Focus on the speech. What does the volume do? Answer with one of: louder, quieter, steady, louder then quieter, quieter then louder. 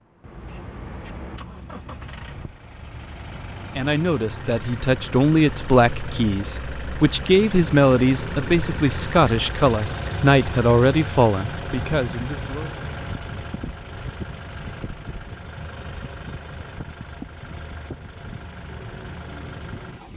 steady.